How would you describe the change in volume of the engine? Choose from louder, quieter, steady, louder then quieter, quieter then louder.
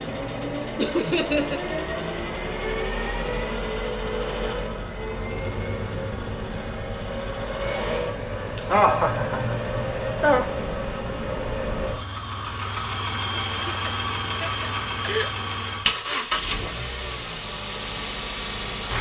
steady.